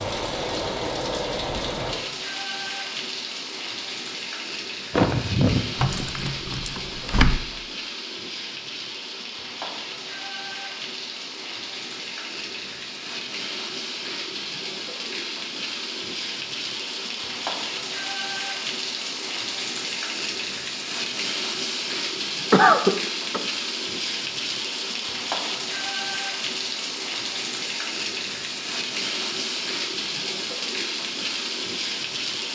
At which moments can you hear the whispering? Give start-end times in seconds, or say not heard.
not heard.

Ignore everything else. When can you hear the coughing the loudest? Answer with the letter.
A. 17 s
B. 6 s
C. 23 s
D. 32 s
C.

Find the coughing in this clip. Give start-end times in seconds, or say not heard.
4.9-5.6, 22.5-23.4.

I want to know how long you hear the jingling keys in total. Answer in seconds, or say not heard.
2 s.